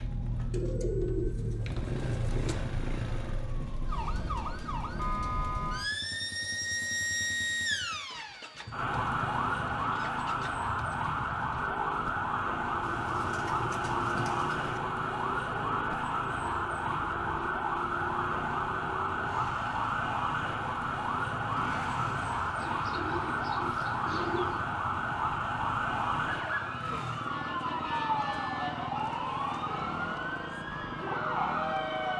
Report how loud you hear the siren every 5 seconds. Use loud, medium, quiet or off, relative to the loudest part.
medium, loud, loud, loud, loud, loud, loud.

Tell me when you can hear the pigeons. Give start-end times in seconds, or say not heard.
0.5-2.5, 12.8-14.8, 22.6-24.6.